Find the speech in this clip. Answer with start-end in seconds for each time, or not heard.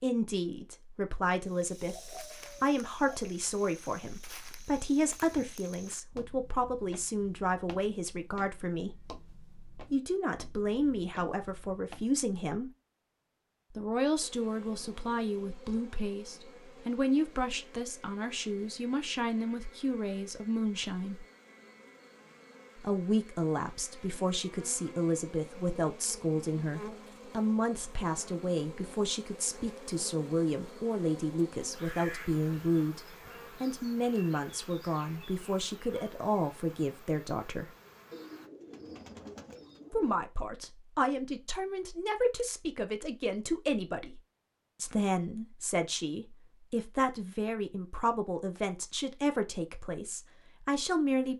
0.0-12.7, 13.8-21.2, 22.8-37.7, 39.9-44.2, 44.8-51.3.